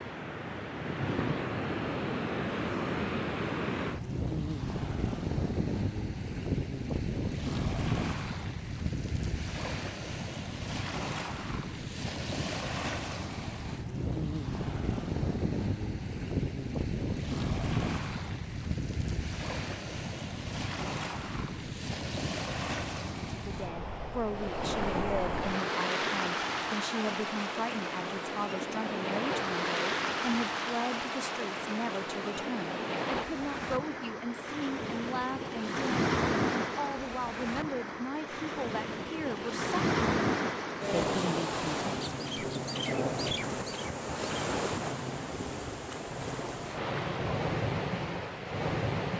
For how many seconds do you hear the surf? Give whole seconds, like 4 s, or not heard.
49 s.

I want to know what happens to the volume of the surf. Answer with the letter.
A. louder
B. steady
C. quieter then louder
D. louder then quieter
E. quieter
B.